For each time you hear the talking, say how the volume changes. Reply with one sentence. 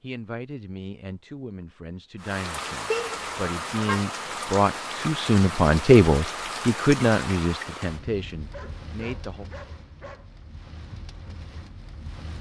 You can hear the talking from 0.0 to 9.4 s, getting louder then quieter.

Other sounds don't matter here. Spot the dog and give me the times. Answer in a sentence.
You can hear the dog from 8.5 to 10.3 s.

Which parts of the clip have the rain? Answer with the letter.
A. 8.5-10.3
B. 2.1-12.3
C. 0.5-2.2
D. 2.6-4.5
B.